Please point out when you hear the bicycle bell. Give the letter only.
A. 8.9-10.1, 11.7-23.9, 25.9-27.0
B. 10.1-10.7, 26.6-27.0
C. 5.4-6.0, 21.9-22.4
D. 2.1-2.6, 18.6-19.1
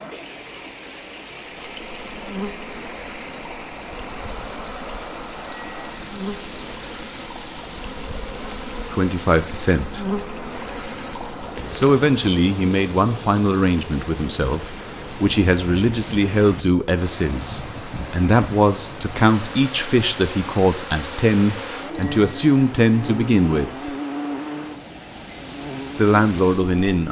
C.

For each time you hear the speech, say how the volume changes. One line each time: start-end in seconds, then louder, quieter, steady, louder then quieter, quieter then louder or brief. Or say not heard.
8.9-10.1 brief
11.7-23.9 steady
25.9-27.0 brief.